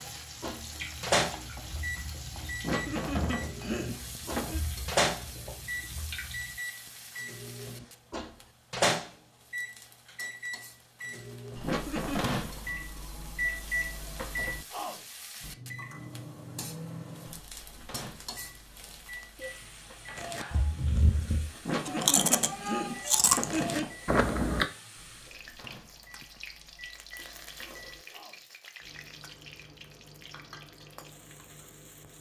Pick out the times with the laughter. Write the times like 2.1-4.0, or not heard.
2.6-4.6, 11.6-12.4, 21.6-23.9.